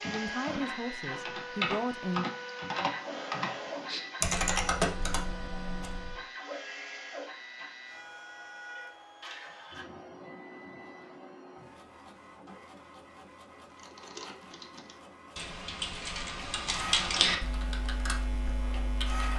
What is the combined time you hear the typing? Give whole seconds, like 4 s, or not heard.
12 s.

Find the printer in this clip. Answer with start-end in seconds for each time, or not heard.
0.0-19.3.